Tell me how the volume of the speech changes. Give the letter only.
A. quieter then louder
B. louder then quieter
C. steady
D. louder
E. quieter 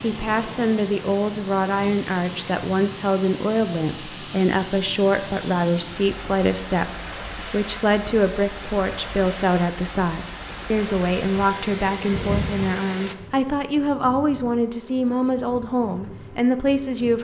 C.